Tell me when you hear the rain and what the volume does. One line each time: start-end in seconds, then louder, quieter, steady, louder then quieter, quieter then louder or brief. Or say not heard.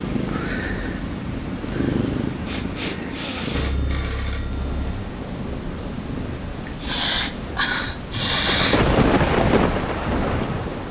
4.3-10.8 louder.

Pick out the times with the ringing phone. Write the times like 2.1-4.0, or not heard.
3.5-5.0.